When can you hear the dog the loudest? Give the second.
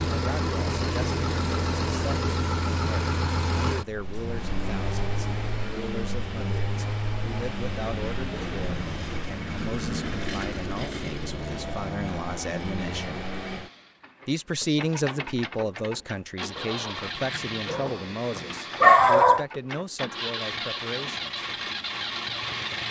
19 s.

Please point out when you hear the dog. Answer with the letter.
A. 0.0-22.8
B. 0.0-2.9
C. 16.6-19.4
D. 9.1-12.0
C.